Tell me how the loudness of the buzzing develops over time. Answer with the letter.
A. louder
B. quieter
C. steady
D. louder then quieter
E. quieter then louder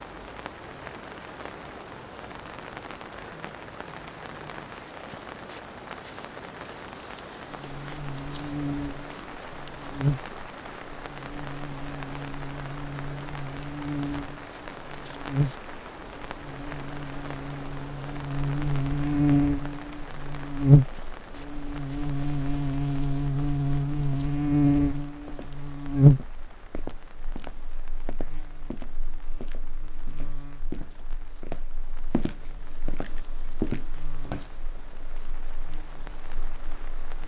D.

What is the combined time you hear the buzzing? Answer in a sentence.
You can hear the buzzing for 30 seconds altogether.